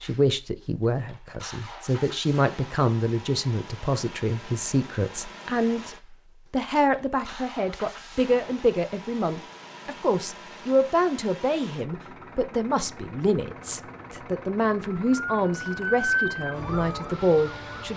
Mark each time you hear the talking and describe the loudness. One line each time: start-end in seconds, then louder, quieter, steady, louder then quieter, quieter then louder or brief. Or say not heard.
0.0-17.9 steady.